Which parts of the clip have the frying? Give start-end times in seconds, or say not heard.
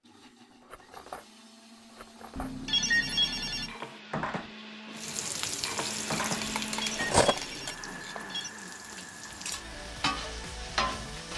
5.0-11.3.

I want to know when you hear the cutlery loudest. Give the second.
7 s.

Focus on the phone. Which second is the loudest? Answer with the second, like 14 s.
3 s.